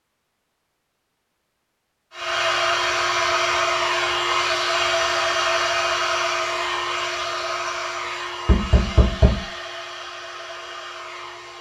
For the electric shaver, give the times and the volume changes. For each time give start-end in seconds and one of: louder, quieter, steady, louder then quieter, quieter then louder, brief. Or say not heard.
not heard.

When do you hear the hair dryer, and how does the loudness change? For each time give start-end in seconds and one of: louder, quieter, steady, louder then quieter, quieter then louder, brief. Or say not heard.
2.1-11.5 quieter.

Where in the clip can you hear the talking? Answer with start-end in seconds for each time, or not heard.
not heard.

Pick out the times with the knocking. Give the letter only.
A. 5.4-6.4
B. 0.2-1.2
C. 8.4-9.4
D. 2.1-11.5
C.